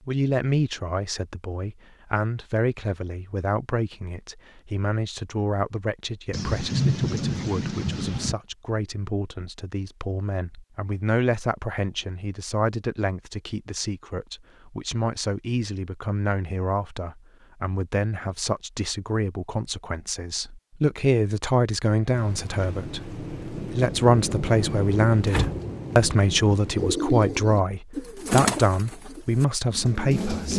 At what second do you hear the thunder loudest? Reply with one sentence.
The loudest moment of the thunder is at 7 seconds.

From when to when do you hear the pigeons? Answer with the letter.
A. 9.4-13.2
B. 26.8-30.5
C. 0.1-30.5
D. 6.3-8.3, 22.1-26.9
B.